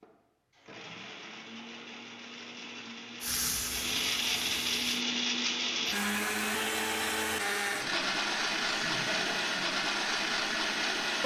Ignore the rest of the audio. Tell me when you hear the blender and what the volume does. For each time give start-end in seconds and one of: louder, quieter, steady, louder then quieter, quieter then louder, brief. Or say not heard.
0.0-11.2 louder.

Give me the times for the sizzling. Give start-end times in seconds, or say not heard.
3.2-5.0.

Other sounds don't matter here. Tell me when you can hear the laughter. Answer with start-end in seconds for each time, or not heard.
8.7-9.6.